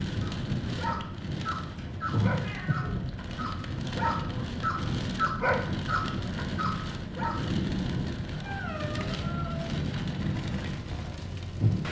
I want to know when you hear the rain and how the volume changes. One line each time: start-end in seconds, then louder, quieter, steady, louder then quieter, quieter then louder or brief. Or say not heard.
0.0-11.8 steady.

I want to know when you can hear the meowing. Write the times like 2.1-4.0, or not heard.
1.8-2.9, 8.3-9.8.